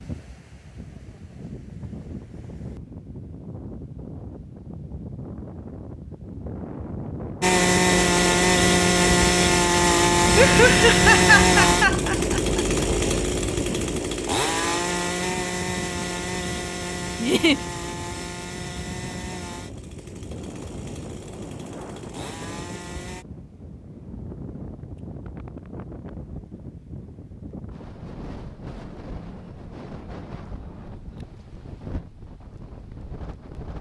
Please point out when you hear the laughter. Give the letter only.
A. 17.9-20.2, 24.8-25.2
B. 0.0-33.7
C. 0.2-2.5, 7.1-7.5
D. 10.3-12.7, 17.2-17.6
D.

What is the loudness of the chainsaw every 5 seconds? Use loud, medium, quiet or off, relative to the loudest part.
off, loud, loud, quiet, quiet, off, off.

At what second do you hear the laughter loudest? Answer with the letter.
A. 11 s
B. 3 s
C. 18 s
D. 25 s
A.